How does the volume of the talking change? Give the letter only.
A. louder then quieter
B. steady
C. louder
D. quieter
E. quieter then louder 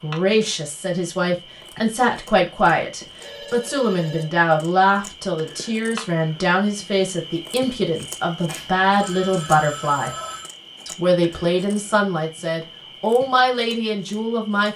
B.